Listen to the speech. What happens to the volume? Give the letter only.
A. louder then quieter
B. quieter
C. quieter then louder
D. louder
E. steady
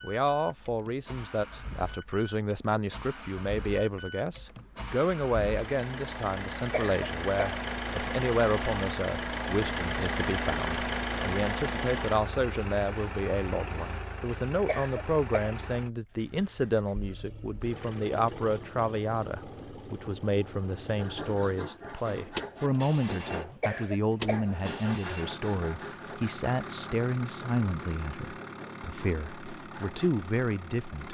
E.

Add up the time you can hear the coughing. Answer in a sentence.
You can hear the coughing for 3 seconds altogether.